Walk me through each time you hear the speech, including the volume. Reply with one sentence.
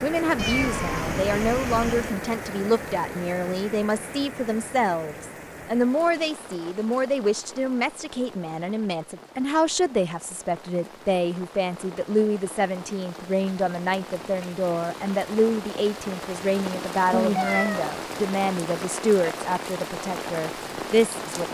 You can hear the speech from 0.0 to 21.4 s, at a steady volume.